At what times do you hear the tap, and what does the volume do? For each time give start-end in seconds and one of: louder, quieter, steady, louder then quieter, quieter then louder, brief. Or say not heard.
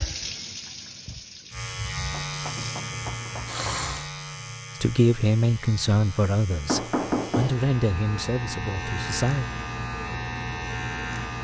0.0-4.1 quieter then louder.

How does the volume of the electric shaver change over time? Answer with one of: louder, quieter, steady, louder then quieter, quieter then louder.
quieter then louder.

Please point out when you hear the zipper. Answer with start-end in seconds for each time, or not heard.
not heard.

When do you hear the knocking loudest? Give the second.
7 s.